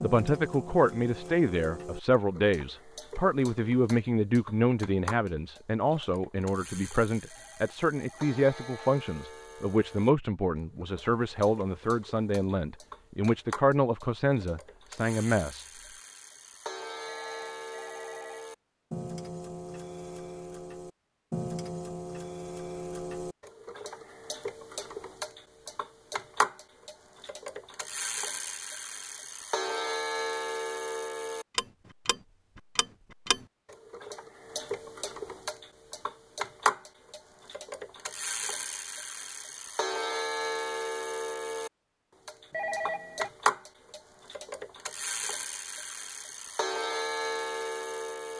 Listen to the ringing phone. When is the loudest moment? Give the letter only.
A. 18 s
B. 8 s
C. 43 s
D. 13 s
C.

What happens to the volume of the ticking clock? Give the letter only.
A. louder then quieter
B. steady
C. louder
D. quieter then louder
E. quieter
C.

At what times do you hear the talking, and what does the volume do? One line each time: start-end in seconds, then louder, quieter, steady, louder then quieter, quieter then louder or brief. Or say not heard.
0.0-15.7 steady.